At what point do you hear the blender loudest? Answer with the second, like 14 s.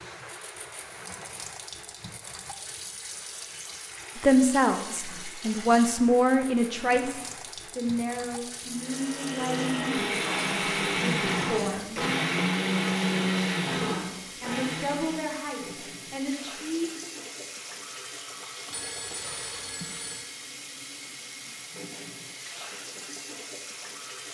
13 s.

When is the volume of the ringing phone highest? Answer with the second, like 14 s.
19 s.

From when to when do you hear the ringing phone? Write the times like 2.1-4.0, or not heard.
2.8-3.6, 18.7-20.2.